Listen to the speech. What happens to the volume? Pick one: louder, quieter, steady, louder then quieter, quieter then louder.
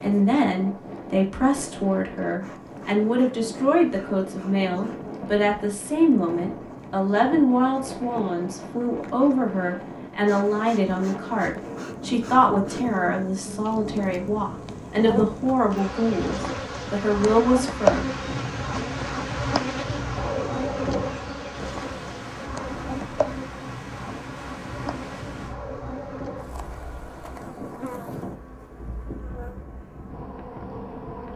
steady.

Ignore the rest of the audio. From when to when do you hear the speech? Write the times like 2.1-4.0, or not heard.
0.0-18.1.